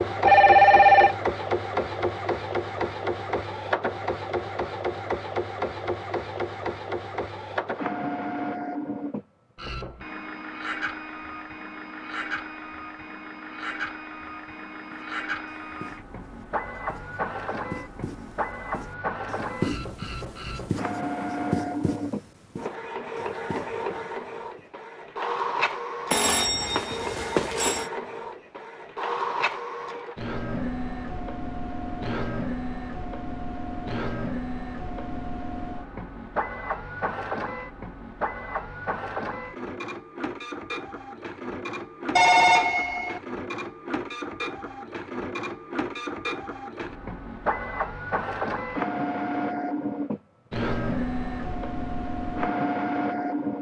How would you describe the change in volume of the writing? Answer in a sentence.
The loudness of the writing goes up, then down.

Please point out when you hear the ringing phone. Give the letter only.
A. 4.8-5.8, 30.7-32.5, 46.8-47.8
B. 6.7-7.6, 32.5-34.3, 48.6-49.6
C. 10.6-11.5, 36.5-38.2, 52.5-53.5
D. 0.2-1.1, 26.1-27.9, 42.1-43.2
D.